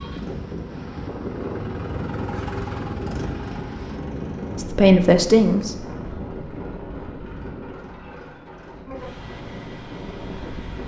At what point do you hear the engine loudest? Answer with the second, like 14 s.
3 s.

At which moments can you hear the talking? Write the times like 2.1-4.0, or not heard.
4.5-5.8.